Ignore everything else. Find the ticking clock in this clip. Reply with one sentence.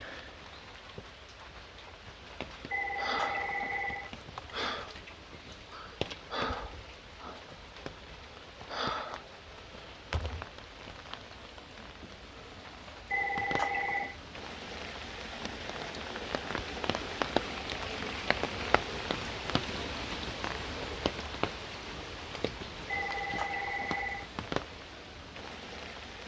The ticking clock can't be heard in this clip.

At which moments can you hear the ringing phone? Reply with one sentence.
You can hear the ringing phone from 2.7 to 4.1 s, from 13.1 to 14.2 s and from 22.9 to 24.3 s.